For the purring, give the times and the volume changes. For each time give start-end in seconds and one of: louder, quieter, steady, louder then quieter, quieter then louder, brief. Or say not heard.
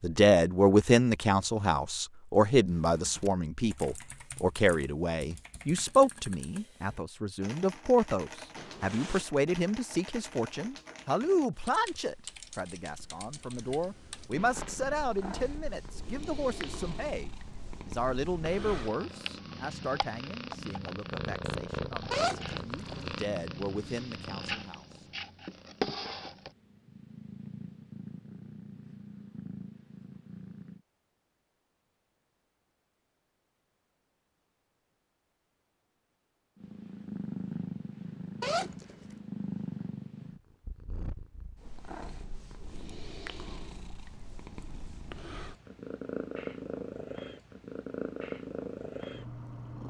14.3-30.8 louder then quieter
36.5-49.8 quieter then louder.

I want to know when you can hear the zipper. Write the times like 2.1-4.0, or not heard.
8.6-9.2, 22.1-23.1, 38.4-39.0.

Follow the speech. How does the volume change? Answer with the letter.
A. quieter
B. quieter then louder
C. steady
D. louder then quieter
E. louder
A.